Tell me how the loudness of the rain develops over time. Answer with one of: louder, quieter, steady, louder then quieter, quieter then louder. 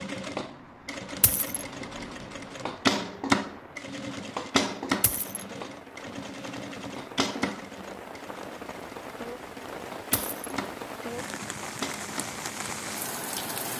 louder.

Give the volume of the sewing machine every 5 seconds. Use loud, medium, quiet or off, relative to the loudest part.
loud, medium, medium.